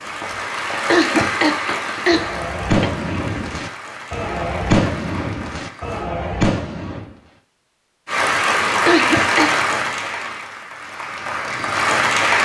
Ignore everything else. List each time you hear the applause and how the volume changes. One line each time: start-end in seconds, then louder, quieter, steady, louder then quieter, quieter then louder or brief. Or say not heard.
0.0-6.0 quieter
8.1-12.4 quieter then louder.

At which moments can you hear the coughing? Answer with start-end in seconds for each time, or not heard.
0.9-2.9, 8.8-9.6.